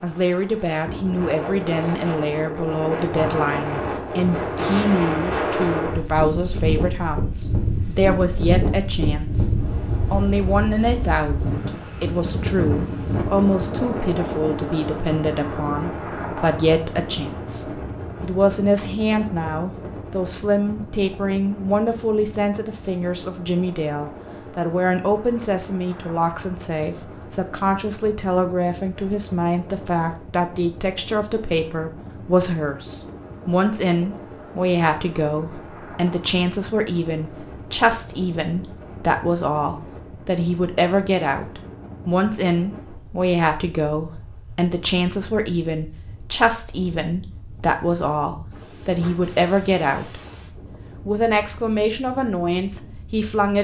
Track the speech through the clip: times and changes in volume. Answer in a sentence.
The speech can be heard from 0.0 to 9.4 s, at a steady volume; from 10.1 to 50.2 s, at a steady volume; and briefly from 51.0 to 53.5 s.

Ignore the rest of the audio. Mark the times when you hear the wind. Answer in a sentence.
The wind can be heard from 0.0 to 53.5 s.